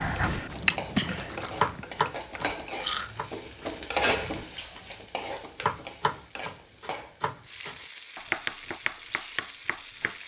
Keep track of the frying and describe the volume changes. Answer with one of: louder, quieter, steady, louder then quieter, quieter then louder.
louder then quieter.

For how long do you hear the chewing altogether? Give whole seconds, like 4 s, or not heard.
3 s.